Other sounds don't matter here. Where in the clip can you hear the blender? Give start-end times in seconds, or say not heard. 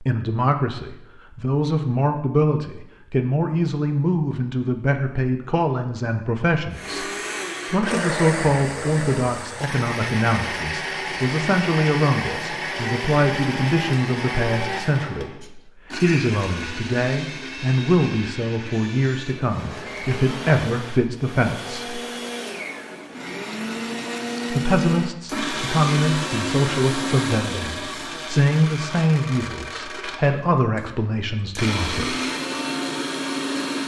6.7-33.8.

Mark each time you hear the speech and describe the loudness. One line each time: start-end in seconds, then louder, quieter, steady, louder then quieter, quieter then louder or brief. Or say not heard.
0.0-7.1 steady
7.7-22.0 steady
24.5-32.1 steady.